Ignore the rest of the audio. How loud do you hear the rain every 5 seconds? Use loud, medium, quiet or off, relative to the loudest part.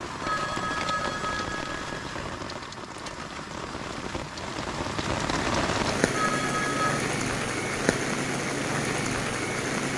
medium, loud.